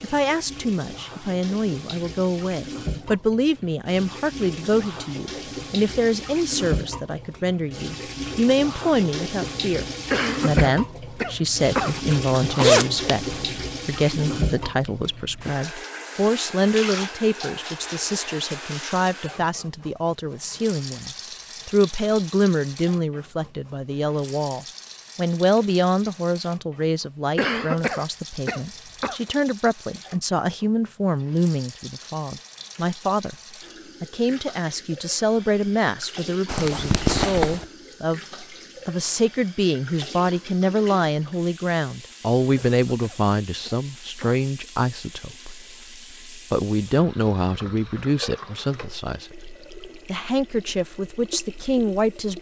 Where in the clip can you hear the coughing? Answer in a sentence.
The coughing can be heard from 10.1 to 12.0 s, from 27.4 to 29.1 s and from 42.5 to 44.5 s.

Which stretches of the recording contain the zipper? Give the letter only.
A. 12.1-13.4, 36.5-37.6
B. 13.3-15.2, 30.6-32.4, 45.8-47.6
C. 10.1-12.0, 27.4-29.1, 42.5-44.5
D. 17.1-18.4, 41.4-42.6
A.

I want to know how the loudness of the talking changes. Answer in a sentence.
The volume of the talking stays about the same.